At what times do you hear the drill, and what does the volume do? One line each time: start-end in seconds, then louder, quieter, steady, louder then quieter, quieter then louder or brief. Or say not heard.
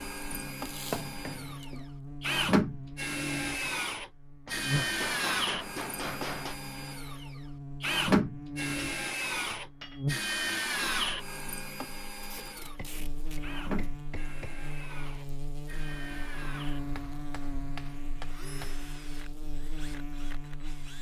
0.0-20.9 quieter.